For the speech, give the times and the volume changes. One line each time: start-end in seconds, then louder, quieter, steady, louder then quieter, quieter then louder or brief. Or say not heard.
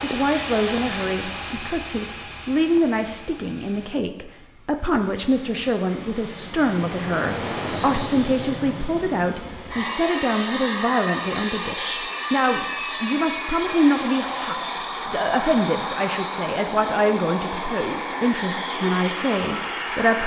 0.0-20.2 steady.